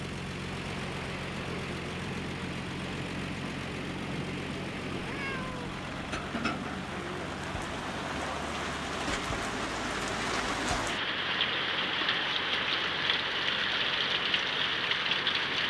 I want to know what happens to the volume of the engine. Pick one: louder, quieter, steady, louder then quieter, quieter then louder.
quieter.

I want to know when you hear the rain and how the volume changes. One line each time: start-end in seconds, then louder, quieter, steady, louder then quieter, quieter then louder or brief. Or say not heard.
0.1-15.6 louder.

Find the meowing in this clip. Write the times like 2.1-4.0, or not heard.
5.0-5.8.